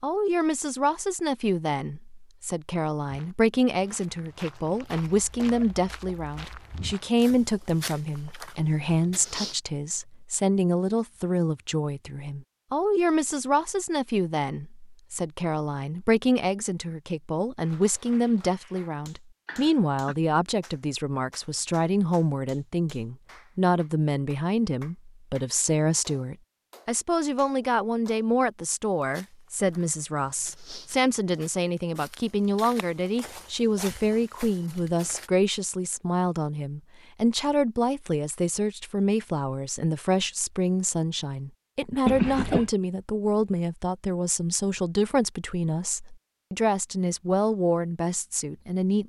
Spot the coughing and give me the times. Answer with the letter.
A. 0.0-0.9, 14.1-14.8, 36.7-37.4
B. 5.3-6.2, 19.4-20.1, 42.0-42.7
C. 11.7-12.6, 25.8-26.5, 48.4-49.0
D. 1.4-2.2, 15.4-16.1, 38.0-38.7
B.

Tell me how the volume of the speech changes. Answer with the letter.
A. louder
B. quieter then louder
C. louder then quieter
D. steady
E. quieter
D.